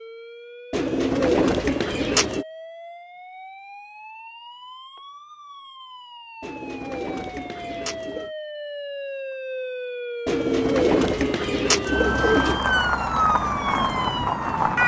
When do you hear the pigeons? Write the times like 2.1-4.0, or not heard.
0.7-2.5, 6.4-8.3, 10.2-12.6.